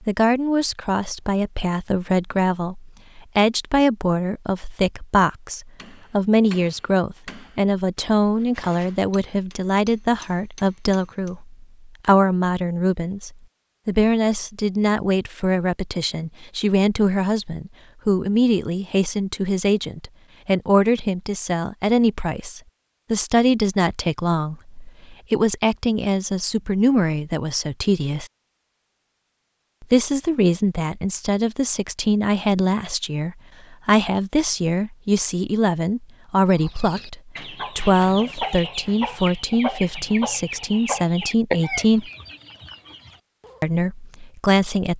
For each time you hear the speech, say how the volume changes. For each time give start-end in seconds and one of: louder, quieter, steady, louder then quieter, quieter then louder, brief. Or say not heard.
0.1-28.3 steady
29.8-42.1 steady
43.6-44.9 brief.